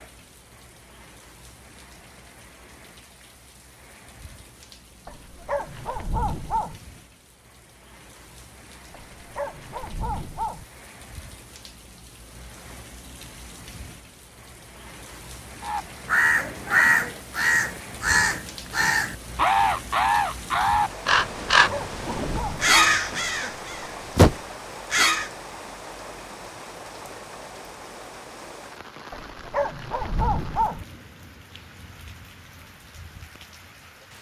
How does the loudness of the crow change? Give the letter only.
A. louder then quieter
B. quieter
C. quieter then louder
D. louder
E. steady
E.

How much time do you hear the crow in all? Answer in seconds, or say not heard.
10 s.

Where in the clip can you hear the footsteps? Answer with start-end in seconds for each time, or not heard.
not heard.